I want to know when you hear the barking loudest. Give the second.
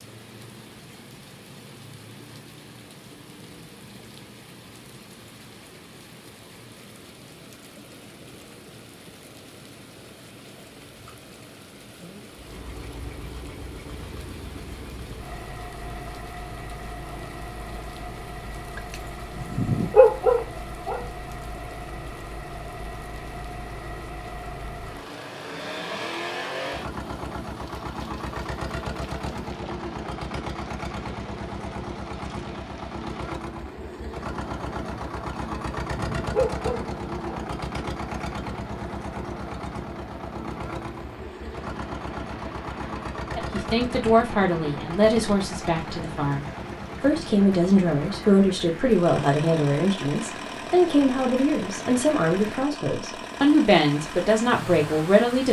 20 s.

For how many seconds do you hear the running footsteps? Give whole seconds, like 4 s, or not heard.
not heard.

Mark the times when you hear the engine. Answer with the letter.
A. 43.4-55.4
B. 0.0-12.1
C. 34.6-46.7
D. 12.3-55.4
D.